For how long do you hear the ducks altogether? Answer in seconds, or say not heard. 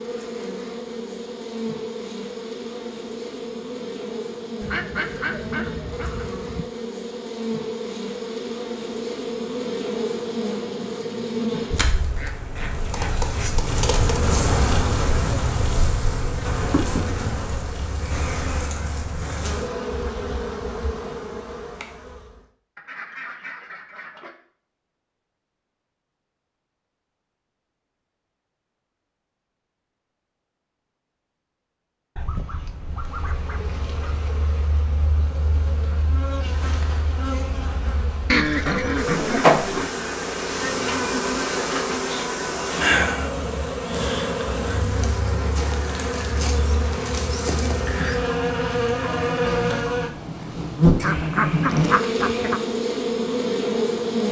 11 s.